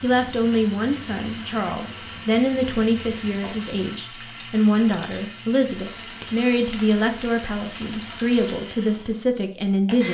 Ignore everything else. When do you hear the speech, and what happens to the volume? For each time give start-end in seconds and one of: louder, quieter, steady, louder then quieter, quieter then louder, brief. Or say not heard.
0.0-10.0 steady.